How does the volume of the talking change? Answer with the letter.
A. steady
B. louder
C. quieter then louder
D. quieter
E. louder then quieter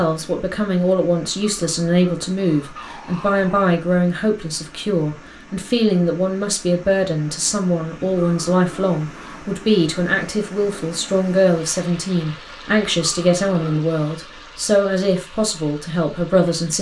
A.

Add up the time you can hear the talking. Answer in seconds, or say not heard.
17 s.